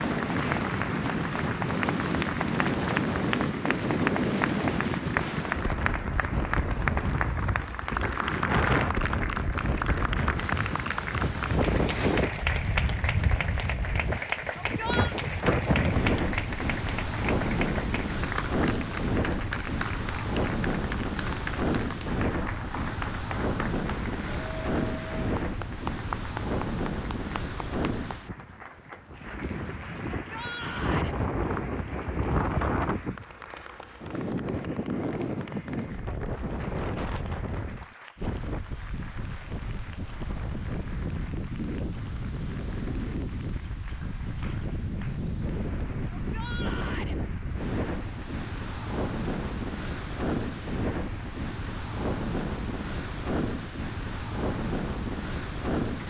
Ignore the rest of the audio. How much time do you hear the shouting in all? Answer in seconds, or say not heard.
3 s.